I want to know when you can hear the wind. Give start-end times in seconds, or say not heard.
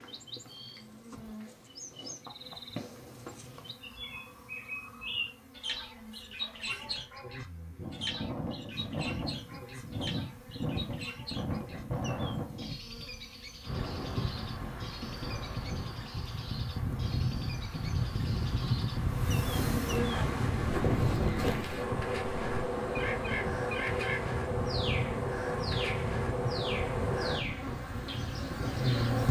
7.8-29.2.